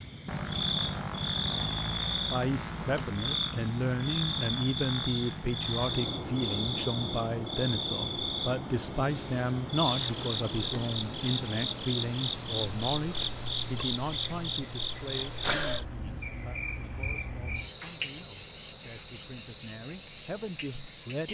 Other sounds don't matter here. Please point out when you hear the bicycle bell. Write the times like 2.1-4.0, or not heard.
not heard.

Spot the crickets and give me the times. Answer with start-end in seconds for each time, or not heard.
0.0-21.2.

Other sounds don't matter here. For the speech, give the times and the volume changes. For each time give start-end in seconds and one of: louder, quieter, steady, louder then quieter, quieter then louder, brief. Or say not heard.
2.3-21.2 quieter.